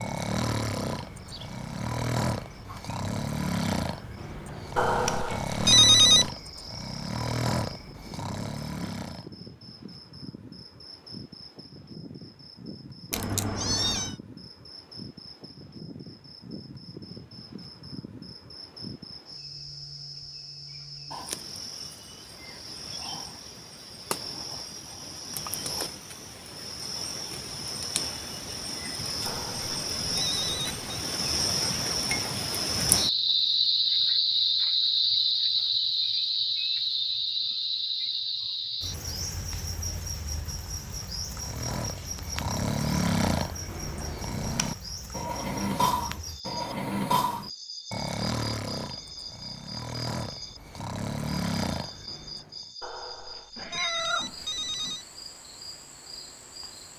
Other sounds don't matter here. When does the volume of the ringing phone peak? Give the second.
6 s.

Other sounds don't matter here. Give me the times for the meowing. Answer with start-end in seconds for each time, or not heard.
13.1-14.1, 53.5-55.0.